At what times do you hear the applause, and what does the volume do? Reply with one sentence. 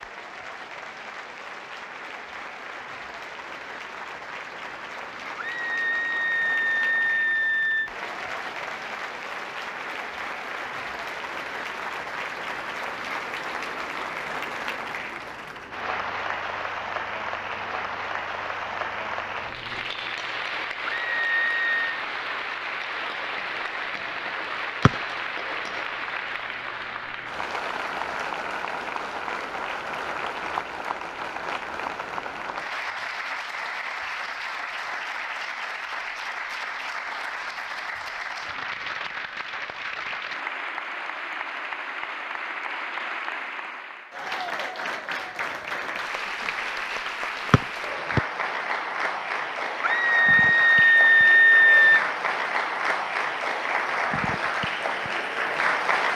You can hear the applause from 0.0 to 56.1 s, getting louder.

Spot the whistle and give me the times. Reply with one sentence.
The whistle can be heard from 47.5 to 48.2 s.